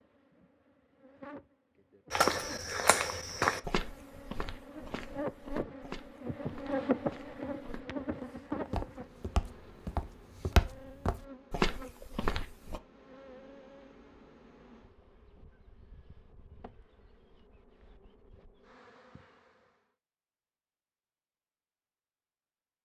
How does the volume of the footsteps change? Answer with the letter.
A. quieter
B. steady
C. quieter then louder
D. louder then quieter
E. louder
C.